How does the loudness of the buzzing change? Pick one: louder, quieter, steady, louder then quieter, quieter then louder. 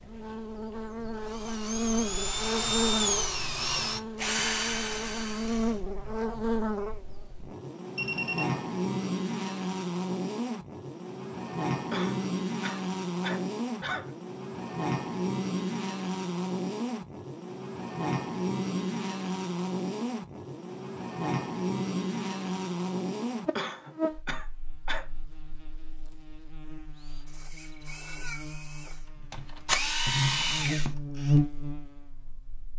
steady.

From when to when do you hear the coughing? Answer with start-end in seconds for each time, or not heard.
11.9-14.2, 23.6-25.1.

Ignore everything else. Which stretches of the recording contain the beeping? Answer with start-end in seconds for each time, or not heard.
8.0-8.6.